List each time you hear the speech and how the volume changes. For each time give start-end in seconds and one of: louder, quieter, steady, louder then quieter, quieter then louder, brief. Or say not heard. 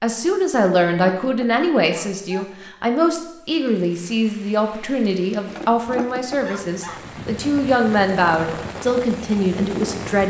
0.0-10.2 steady.